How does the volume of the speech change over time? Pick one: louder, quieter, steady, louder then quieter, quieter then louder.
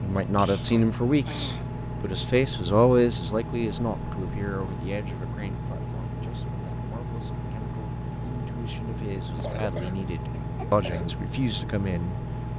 quieter then louder.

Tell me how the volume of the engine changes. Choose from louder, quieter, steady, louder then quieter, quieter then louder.
steady.